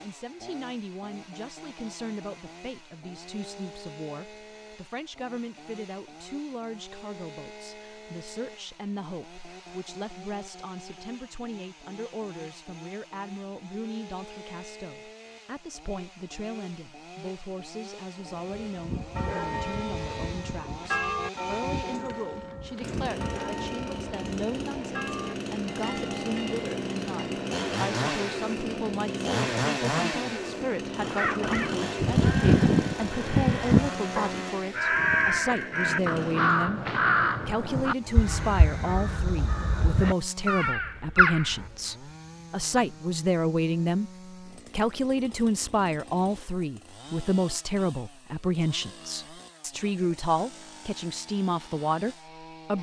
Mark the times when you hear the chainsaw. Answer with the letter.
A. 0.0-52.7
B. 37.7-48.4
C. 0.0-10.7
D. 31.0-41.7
A.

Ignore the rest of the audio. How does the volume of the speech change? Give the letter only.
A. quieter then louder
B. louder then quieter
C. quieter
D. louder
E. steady
D.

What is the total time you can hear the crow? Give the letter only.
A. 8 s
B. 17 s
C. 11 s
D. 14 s
C.